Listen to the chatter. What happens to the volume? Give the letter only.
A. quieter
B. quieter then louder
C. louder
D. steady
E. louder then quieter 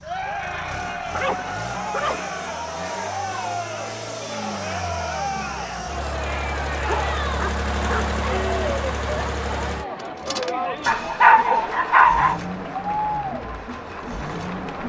D.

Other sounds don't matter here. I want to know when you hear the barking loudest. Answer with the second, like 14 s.
11 s.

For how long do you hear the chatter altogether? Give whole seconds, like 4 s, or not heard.
15 s.